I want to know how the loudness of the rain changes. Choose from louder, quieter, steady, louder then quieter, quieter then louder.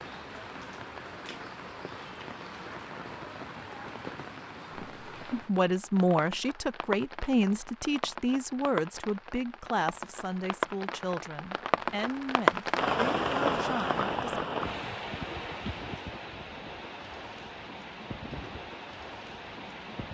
louder then quieter.